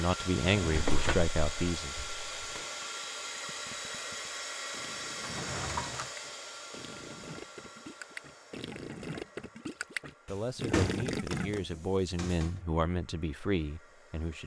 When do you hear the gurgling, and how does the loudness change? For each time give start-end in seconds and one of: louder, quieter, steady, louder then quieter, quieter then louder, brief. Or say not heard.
2.5-11.6 louder.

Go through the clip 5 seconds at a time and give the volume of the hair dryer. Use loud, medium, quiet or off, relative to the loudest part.
loud, medium, quiet.